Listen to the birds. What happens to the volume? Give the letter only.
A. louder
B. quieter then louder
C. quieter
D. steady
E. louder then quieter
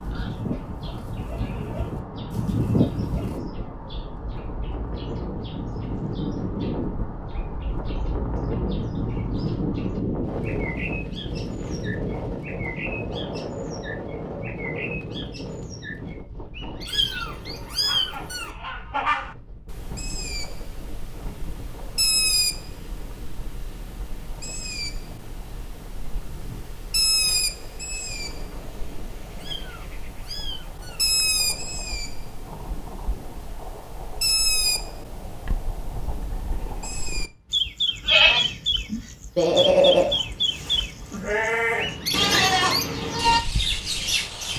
A.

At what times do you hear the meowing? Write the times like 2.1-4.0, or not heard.
16.9-18.5, 29.4-31.1.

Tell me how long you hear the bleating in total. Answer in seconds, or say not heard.
9 s.